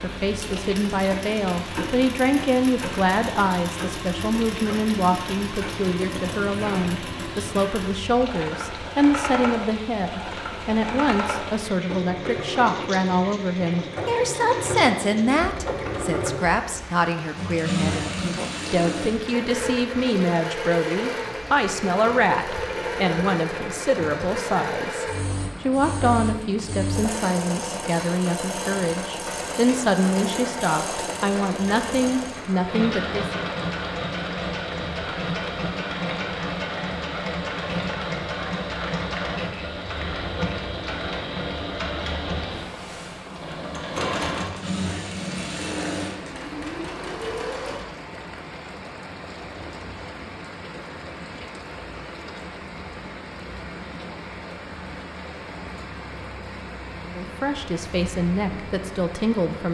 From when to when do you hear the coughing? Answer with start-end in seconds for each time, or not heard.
not heard.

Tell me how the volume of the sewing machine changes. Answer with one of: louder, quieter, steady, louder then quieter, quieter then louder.
steady.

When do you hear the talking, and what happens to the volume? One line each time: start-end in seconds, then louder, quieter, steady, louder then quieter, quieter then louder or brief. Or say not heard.
0.0-33.5 steady
57.0-59.7 brief.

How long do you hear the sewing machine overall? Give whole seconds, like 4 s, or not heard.
48 s.